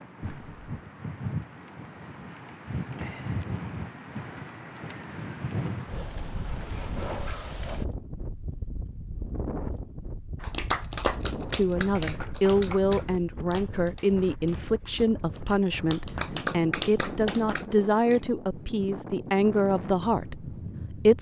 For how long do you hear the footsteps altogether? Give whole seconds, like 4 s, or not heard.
not heard.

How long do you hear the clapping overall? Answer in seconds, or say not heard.
7 s.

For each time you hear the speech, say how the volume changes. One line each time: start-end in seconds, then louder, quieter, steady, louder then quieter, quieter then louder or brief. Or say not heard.
11.5-21.1 steady.